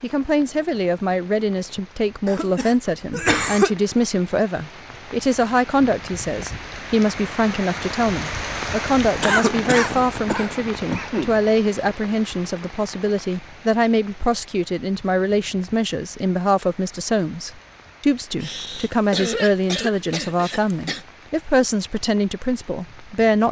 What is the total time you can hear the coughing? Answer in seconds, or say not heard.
6 s.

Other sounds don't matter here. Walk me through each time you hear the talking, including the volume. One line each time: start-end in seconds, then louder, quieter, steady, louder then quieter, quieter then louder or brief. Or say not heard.
0.0-23.4 steady.